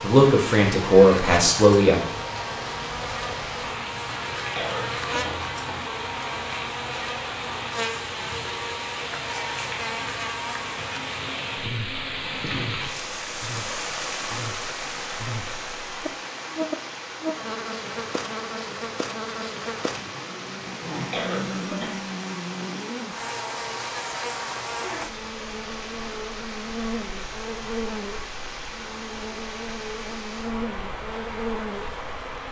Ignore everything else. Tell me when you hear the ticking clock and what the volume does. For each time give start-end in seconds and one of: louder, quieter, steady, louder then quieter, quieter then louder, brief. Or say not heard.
not heard.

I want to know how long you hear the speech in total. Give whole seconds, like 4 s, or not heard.
2 s.